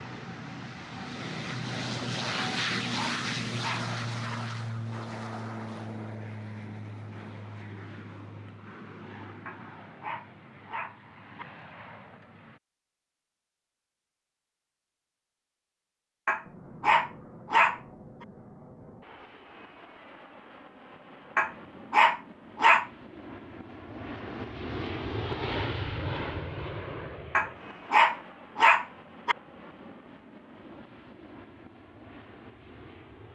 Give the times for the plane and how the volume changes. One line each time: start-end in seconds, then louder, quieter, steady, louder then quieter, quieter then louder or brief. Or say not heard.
0.0-12.6 quieter
16.4-33.2 louder then quieter.